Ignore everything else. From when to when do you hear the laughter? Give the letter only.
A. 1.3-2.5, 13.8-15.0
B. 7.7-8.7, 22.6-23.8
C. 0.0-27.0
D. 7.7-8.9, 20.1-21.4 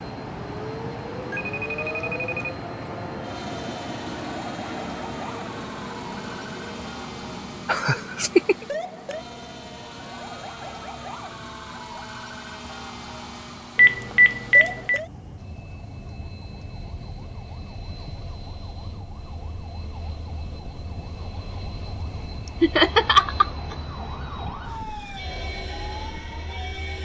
B.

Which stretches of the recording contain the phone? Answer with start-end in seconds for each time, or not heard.
1.3-2.5, 13.8-15.0.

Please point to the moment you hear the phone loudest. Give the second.
14 s.